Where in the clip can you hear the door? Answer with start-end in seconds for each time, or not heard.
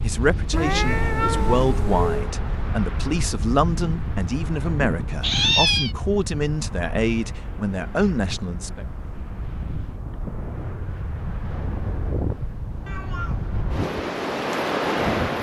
not heard.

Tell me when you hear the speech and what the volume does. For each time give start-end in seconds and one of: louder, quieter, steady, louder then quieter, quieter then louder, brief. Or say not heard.
0.0-8.8 steady.